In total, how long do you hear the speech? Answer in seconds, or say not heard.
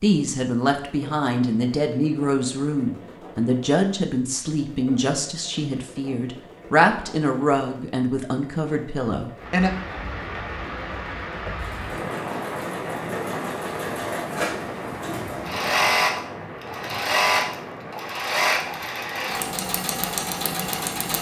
10 s.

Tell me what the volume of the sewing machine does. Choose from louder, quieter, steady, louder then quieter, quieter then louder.
louder.